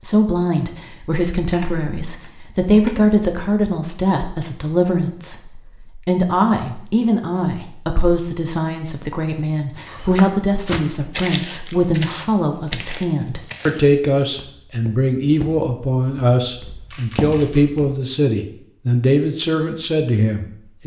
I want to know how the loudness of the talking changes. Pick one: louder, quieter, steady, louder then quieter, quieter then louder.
steady.